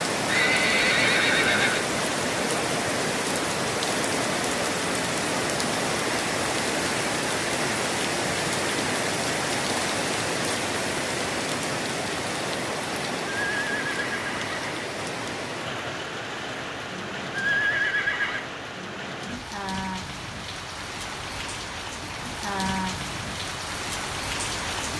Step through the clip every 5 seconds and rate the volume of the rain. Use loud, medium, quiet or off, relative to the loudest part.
loud, loud, loud, medium, medium.